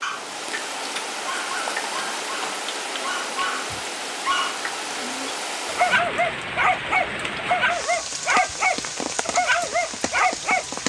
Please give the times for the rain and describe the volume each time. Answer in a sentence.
You can hear the rain from 0.0 to 10.8 s, at a steady volume.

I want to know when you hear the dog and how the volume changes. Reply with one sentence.
You can hear the dog from 0.0 to 10.7 s, getting louder.